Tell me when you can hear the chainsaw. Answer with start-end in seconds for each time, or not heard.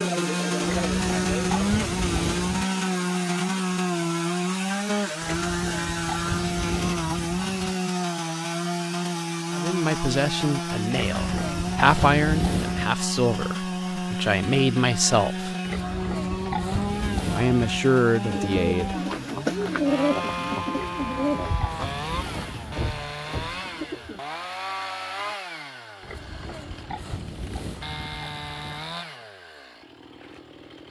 0.0-30.8.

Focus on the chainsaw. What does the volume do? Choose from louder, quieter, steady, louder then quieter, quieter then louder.
quieter.